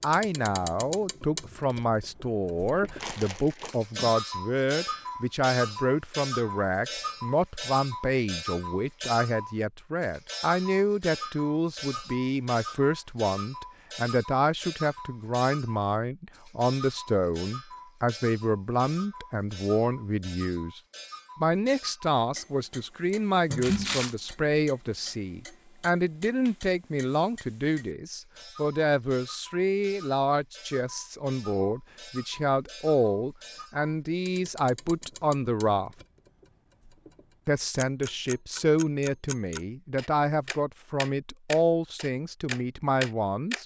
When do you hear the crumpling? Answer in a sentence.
You can hear the crumpling from 2.8 to 4.2 s and from 23.5 to 24.1 s.